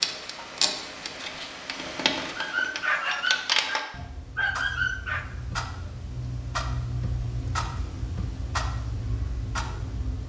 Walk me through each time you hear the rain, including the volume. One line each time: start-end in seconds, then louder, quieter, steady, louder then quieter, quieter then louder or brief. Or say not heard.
not heard.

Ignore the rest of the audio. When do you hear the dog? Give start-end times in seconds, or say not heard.
2.4-5.2.